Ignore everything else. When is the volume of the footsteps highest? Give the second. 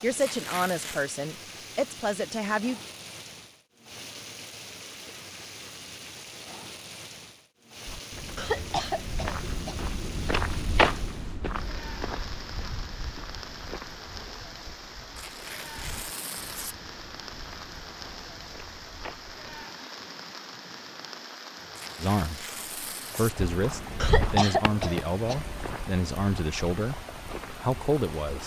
11 s.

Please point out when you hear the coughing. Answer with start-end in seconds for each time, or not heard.
8.3-9.8, 23.9-25.9.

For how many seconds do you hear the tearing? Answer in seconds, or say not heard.
4 s.